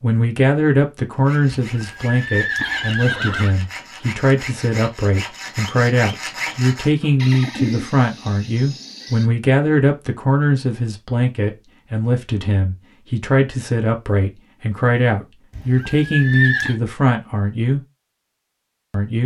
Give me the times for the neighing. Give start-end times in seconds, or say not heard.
1.7-3.5, 7.2-9.3, 15.5-16.8.